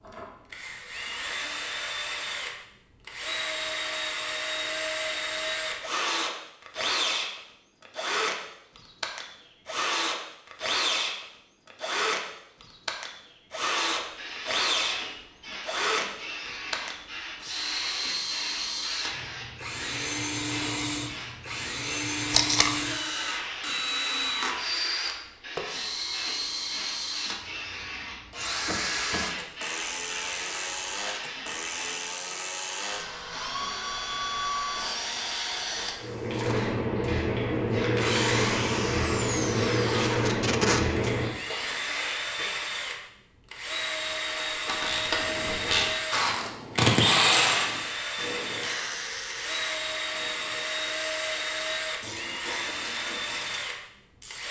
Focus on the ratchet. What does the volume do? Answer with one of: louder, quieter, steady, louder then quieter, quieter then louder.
louder then quieter.